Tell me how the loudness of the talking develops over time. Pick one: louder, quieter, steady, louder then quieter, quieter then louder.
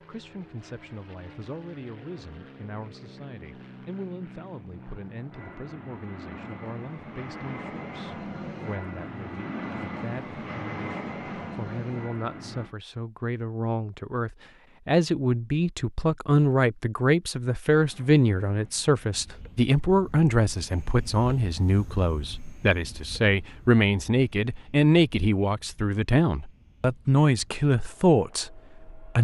louder.